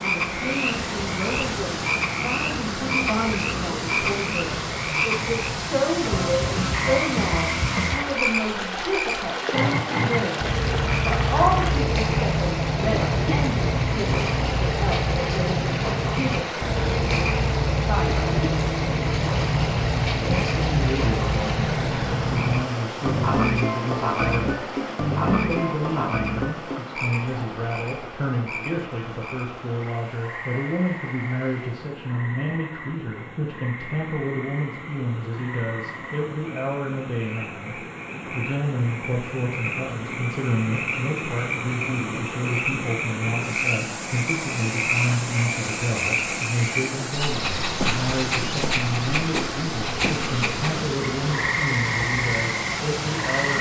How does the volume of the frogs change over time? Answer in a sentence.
The loudness of the frogs goes down, then up.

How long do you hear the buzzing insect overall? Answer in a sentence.
You can't hear the buzzing insect here.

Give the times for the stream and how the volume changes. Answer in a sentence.
The stream can be heard from 0.0 to 53.5 s, getting quieter then louder.